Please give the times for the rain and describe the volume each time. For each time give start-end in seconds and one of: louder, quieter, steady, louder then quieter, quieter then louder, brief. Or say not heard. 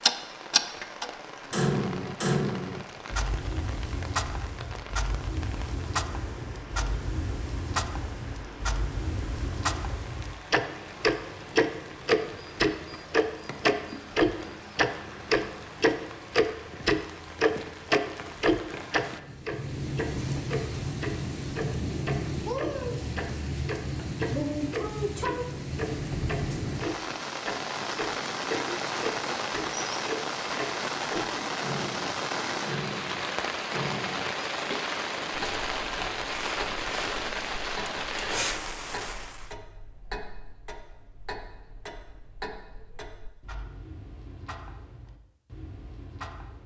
0.0-39.5 louder.